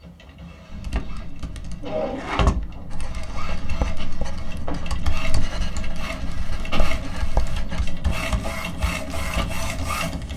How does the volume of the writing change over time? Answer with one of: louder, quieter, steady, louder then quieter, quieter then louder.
quieter then louder.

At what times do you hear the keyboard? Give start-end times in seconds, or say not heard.
0.7-10.3.